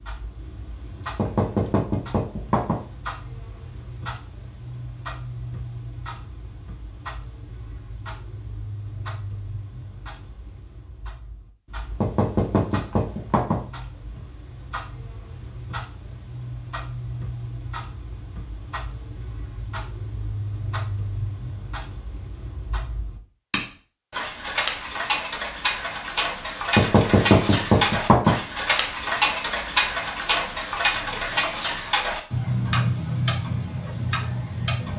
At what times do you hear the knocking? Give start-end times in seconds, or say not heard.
1.1-2.8, 12.0-13.6, 26.8-28.4.